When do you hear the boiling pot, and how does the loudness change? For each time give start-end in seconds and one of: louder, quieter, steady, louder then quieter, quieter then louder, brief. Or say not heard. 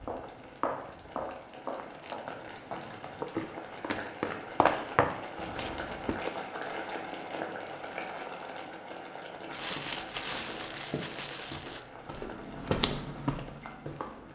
0.0-14.2 louder then quieter.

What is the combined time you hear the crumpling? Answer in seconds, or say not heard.
3 s.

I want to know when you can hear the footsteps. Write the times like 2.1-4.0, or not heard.
0.0-6.3, 9.6-14.2.